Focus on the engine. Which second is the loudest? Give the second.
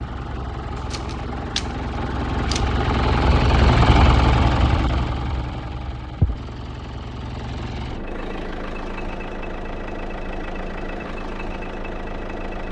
4 s.